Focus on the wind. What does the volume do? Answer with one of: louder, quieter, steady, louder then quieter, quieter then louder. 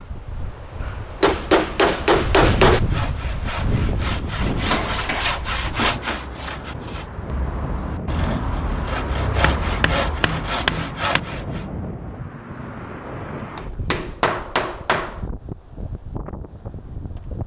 quieter.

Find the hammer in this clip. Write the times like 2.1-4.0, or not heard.
1.2-2.8, 4.6-6.3, 9.4-11.2, 13.6-15.2.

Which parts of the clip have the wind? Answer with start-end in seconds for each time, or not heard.
0.0-17.4.